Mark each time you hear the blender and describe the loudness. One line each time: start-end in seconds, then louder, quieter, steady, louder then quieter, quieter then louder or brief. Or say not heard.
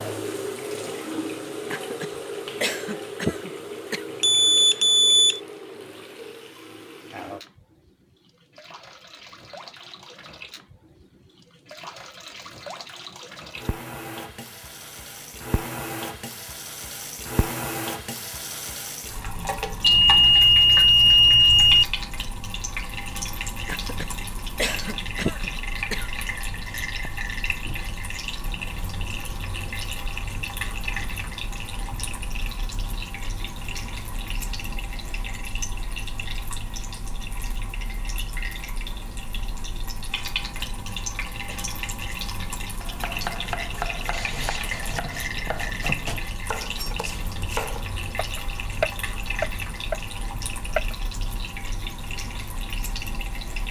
not heard.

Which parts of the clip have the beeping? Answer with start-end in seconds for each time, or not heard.
4.2-5.4, 19.8-21.9, 44.1-44.9.